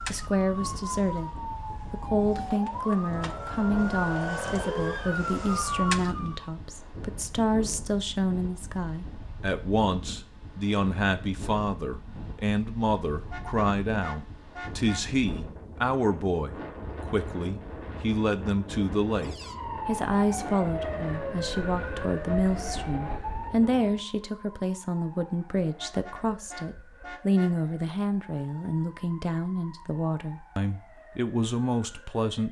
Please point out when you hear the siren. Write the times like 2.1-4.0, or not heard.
0.0-6.5, 19.1-32.4.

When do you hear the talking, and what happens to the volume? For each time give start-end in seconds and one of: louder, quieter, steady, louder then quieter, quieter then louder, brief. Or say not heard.
0.1-32.4 steady.